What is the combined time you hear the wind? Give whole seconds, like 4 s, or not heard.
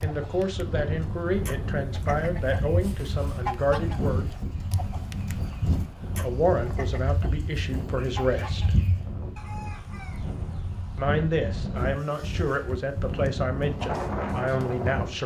15 s.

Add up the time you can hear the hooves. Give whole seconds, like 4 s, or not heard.
7 s.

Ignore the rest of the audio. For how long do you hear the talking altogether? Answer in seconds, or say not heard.
11 s.